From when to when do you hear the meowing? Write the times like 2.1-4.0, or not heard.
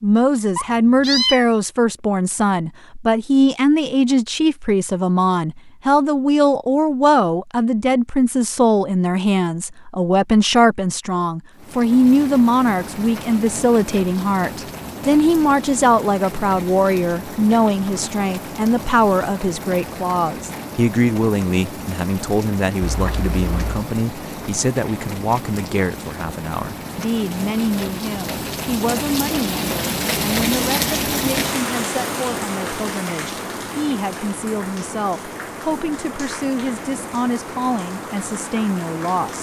0.6-1.4, 22.8-23.9.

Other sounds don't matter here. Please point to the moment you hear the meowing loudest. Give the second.
1 s.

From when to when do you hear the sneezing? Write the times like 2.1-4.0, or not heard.
not heard.